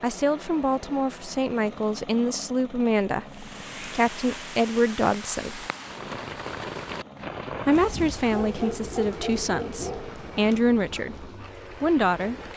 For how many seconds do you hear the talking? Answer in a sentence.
You can hear the talking for 10 seconds altogether.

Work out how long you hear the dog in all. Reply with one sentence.
The dog can be heard for 3 seconds in total.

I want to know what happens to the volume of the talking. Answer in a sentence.
The loudness of the talking stays about the same.